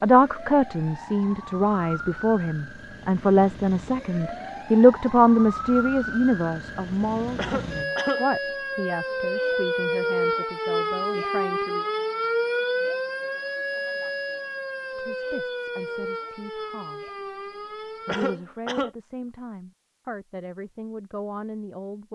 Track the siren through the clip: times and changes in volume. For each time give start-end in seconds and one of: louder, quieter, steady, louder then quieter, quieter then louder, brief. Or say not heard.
0.0-18.4 louder then quieter.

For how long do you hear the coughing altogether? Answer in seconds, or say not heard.
2 s.